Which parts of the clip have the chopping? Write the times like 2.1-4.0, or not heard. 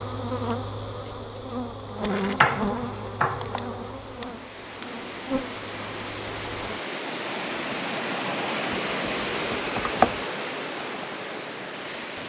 2.4-3.5, 9.3-10.2.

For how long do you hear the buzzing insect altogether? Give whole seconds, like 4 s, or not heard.
7 s.